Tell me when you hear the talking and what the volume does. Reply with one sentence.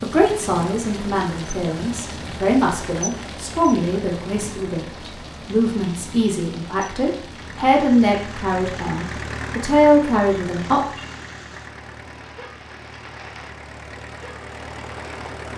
The talking can be heard from 0.0 to 10.8 s, getting louder.